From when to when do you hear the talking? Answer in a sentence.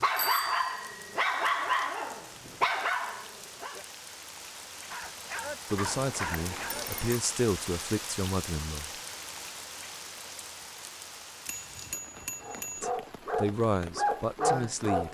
You can hear the talking from 5.7 to 8.9 s and from 12.8 to 15.0 s.